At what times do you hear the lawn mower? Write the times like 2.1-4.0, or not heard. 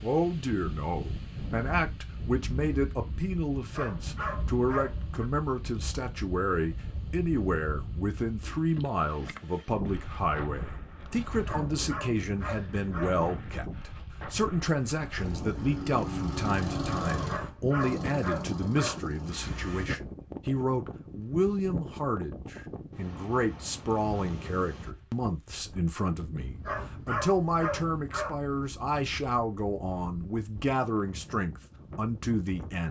15.2-19.9.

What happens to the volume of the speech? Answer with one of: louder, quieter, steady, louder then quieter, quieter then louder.
steady.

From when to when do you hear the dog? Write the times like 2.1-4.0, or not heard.
3.7-5.3, 11.4-13.2, 17.2-19.0, 26.6-28.4.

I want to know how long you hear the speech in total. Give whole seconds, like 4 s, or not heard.
33 s.